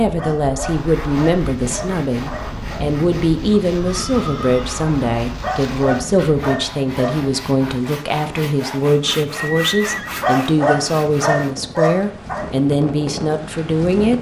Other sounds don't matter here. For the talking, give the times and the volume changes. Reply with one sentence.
The talking can be heard from 0.0 to 14.1 s, at a steady volume.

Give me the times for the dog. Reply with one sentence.
You can hear the dog from 0.1 to 2.9 s, from 5.4 to 7.2 s and from 10.2 to 12.4 s.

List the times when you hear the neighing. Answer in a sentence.
The neighing can be heard from 3.6 to 4.8 s and from 9.3 to 10.1 s.